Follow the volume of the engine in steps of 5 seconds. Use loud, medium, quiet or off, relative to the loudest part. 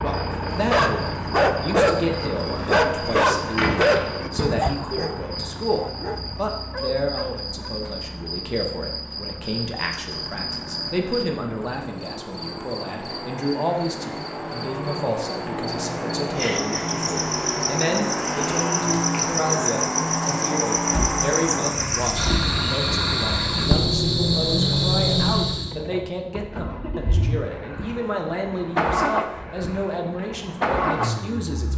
medium, quiet, medium, loud, loud, loud, loud.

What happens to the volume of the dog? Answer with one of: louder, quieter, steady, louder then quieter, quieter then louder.
quieter.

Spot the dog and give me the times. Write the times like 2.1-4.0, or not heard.
0.3-7.5.